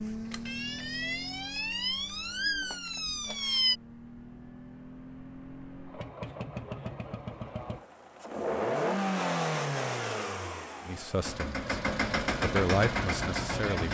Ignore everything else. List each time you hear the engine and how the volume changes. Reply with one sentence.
You can hear the engine from 0.0 to 13.8 s, getting louder.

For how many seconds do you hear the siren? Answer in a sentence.
You can hear the siren for 4 seconds altogether.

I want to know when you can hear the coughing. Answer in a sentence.
You can't hear the coughing here.